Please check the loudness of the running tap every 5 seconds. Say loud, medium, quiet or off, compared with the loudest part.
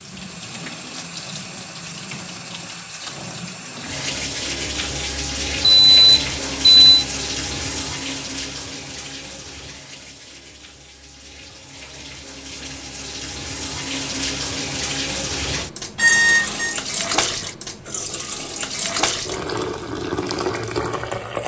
medium, loud, medium, loud, loud.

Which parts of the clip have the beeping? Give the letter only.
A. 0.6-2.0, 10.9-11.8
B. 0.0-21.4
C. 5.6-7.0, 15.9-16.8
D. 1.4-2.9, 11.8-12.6
C.